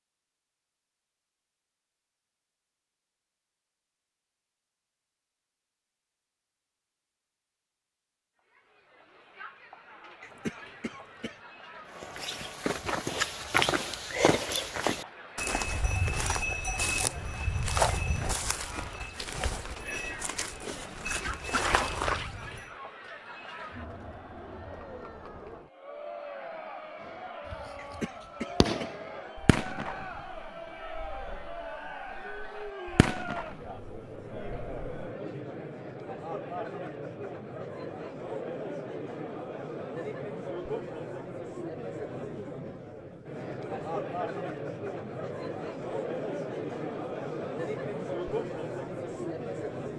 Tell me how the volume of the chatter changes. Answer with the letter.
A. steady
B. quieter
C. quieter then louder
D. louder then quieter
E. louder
E.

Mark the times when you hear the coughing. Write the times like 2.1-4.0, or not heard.
10.2-11.4, 27.8-28.9.